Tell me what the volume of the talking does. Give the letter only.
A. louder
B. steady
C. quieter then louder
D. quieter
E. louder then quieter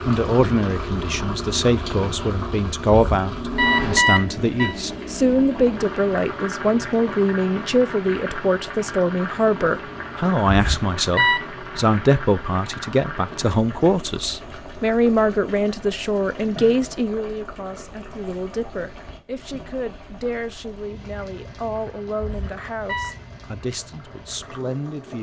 D.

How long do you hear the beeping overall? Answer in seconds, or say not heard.
4 s.